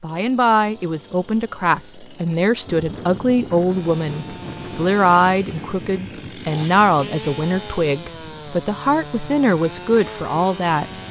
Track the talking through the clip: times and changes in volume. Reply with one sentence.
You can hear the talking from 0.0 to 10.8 s, at a steady volume.